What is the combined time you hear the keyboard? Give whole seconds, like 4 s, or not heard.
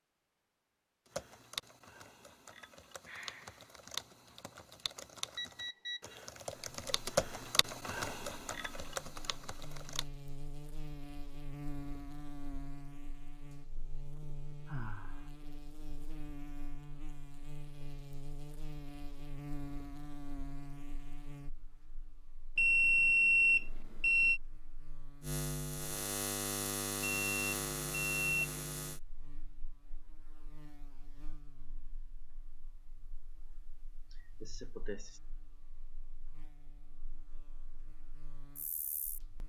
9 s.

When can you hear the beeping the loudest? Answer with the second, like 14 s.
23 s.